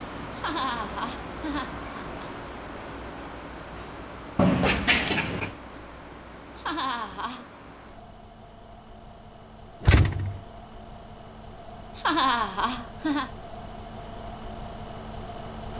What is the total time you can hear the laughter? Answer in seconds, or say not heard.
4 s.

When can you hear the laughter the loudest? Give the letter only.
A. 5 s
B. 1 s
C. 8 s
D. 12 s
D.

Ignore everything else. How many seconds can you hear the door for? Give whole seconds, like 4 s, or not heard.
2 s.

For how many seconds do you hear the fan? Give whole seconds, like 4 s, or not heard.
16 s.